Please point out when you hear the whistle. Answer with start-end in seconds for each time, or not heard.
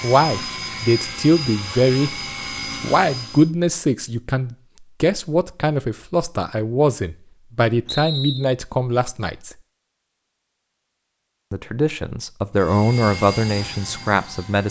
7.8-8.5.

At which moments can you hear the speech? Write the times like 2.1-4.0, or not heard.
0.0-2.1, 2.8-9.6, 11.5-14.6.